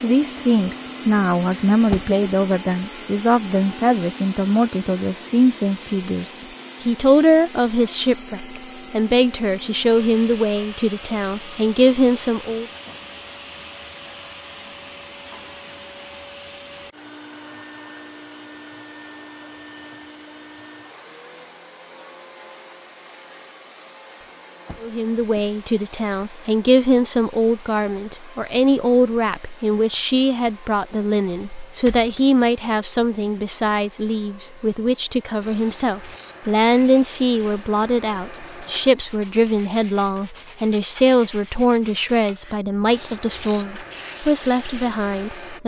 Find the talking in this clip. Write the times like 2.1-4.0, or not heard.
0.0-12.7, 24.8-45.6.